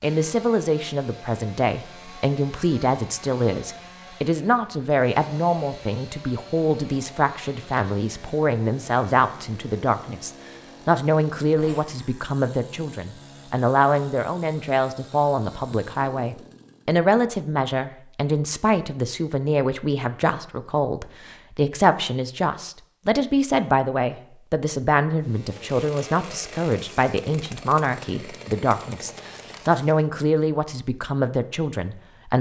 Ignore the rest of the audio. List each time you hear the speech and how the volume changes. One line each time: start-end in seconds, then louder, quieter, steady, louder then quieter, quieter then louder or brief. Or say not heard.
0.0-32.3 steady.